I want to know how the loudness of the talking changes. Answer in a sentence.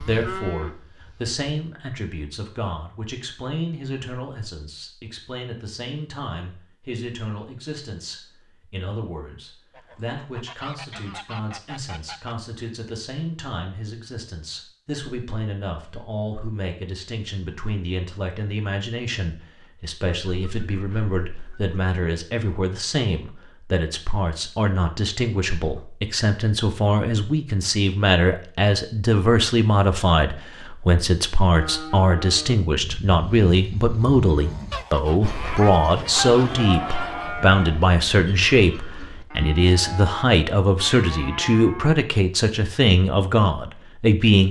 The loudness of the talking goes up.